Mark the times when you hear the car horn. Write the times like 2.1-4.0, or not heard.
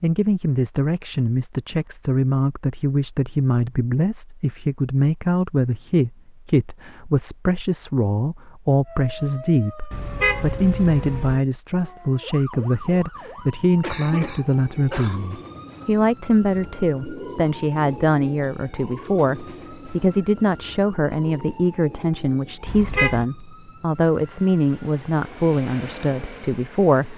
9.9-11.4, 22.6-23.2.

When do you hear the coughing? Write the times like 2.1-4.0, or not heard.
13.8-15.2.